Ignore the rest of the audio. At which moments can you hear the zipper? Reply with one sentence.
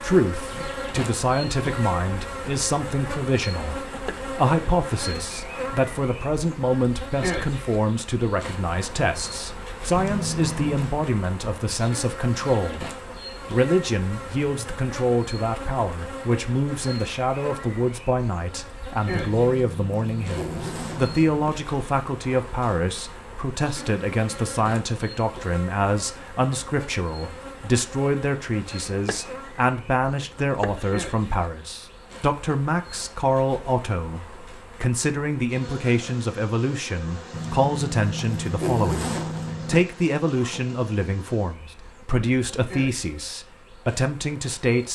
You can hear the zipper from 9.9 to 10.9 s, from 19.1 to 21.6 s and from 37.3 to 39.9 s.